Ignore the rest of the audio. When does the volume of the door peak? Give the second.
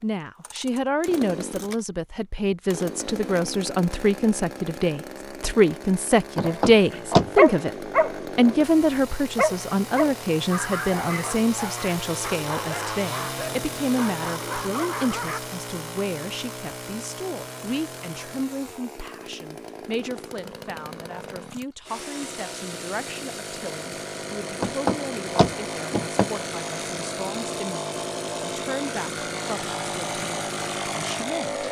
7 s.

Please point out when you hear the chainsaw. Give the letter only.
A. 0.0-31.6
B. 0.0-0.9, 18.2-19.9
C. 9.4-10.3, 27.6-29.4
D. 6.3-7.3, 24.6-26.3
A.